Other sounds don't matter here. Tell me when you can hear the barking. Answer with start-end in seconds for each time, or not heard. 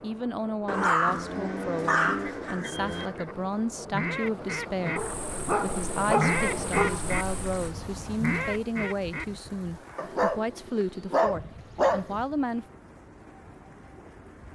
0.7-3.1, 5.0-7.7, 9.9-12.2.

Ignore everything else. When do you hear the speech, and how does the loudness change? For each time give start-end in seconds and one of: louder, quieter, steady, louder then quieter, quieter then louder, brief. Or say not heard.
0.0-12.7 steady.